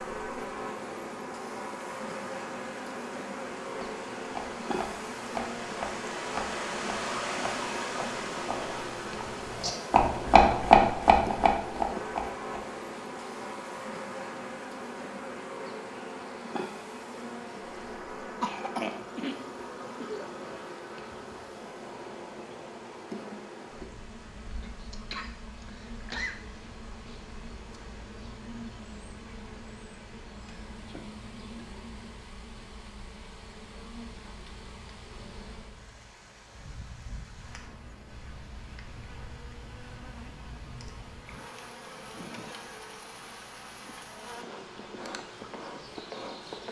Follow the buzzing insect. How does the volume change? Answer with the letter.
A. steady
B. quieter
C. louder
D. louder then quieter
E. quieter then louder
B.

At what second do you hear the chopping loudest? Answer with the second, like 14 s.
11 s.